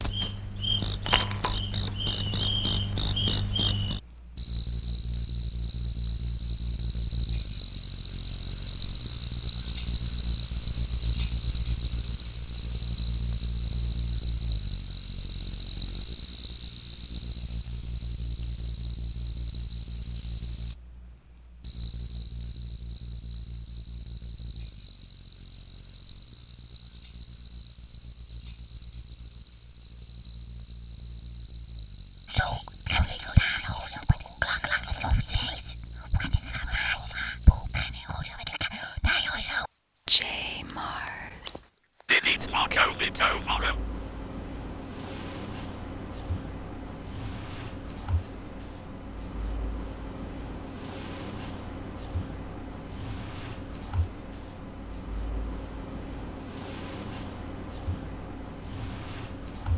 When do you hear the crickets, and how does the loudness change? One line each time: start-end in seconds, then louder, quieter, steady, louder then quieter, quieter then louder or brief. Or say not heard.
0.0-59.7 quieter.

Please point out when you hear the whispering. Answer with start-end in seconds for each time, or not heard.
32.3-43.8.